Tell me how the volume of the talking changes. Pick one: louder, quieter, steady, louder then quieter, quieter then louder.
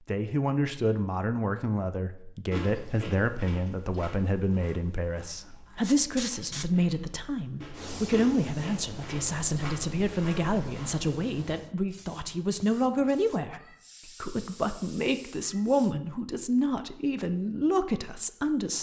steady.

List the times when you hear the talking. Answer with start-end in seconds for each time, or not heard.
0.1-18.7.